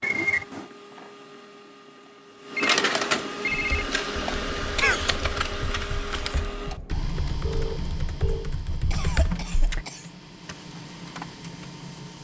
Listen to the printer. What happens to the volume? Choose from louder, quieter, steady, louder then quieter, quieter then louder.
louder then quieter.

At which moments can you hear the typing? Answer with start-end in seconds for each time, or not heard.
3.5-9.8.